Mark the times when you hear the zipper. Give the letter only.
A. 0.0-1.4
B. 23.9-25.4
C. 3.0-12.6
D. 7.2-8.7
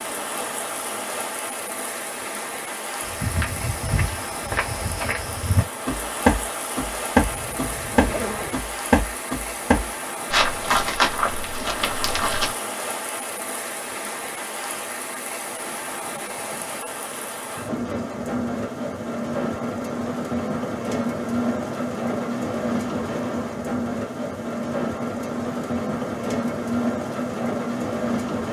D.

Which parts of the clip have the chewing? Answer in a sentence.
You can't hear the chewing here.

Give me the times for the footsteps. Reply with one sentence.
You can hear the footsteps from 3.0 to 12.6 s.